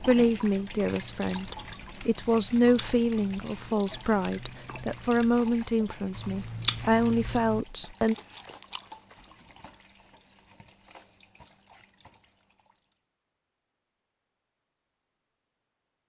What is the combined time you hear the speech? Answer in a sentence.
The speech can be heard for 8 seconds in total.